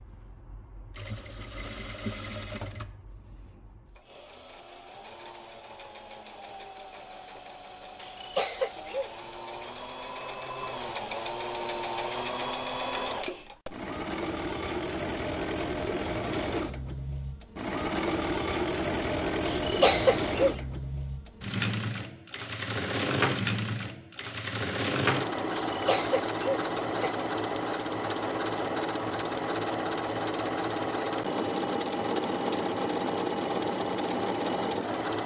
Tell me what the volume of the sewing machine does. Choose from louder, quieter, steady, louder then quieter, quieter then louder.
louder.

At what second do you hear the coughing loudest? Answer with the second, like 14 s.
20 s.